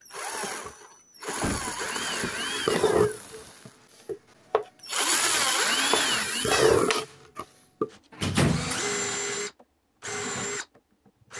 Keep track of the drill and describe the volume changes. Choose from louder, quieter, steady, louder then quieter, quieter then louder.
louder then quieter.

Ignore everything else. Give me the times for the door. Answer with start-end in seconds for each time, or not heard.
1.4-3.5, 8.2-8.8.